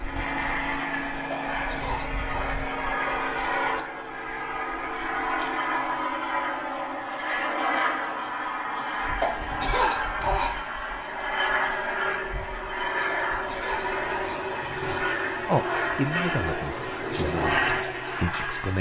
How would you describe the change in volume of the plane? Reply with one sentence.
The loudness of the plane stays about the same.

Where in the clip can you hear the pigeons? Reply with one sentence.
You can hear the pigeons from 12.6 to 17.9 s.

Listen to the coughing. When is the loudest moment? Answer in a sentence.
The volume of the coughing peaks at 10 seconds.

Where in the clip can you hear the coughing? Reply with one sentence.
You can hear the coughing from 1.6 to 2.5 s, from 9.2 to 10.7 s and from 13.3 to 14.6 s.